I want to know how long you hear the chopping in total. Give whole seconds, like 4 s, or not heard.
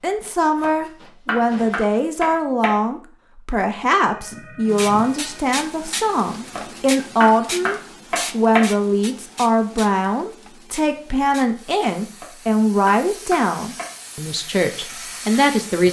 6 s.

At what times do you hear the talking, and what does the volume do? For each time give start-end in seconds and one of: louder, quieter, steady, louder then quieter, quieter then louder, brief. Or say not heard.
0.0-15.8 steady.